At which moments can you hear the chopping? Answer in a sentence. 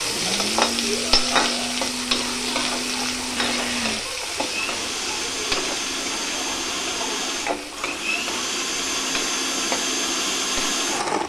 You can't hear the chopping here.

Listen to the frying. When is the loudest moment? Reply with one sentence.
The volume of the frying peaks at 1 second.